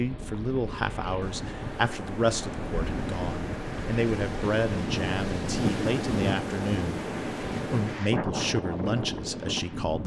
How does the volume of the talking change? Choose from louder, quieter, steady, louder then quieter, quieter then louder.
steady.